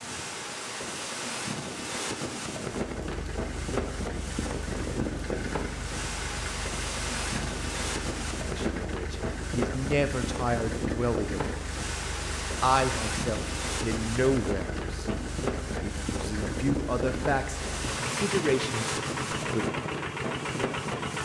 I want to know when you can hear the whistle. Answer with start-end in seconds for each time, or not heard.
not heard.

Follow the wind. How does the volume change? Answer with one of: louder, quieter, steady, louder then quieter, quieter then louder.
steady.